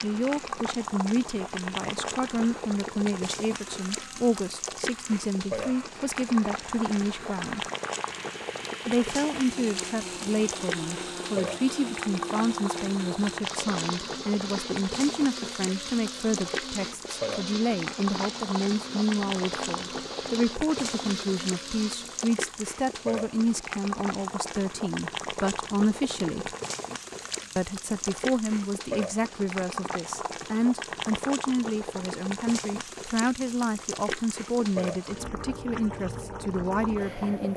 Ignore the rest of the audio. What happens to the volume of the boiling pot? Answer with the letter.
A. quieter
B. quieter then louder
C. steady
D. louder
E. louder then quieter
C.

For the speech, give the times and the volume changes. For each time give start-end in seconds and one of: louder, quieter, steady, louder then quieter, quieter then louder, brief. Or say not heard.
0.0-7.7 steady
8.8-26.6 steady
27.6-37.5 steady.